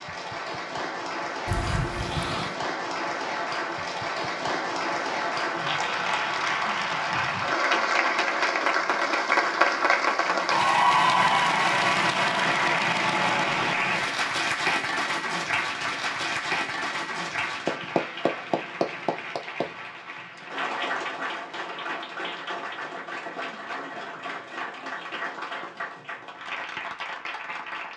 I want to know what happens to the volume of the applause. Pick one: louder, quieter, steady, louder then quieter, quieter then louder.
louder then quieter.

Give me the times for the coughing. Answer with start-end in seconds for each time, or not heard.
1.4-2.5.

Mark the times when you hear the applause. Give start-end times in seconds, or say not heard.
0.0-27.9.